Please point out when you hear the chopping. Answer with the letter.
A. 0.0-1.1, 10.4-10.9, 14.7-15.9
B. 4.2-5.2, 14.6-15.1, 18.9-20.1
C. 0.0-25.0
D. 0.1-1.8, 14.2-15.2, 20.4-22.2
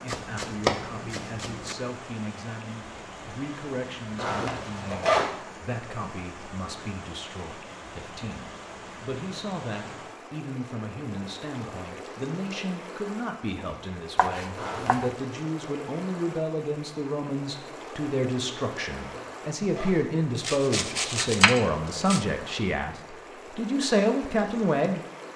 D.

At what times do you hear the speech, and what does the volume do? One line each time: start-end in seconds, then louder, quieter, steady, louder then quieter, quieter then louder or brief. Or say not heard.
0.0-25.0 louder.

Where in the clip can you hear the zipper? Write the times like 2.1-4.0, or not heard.
4.2-5.2, 14.6-15.1, 18.9-20.1.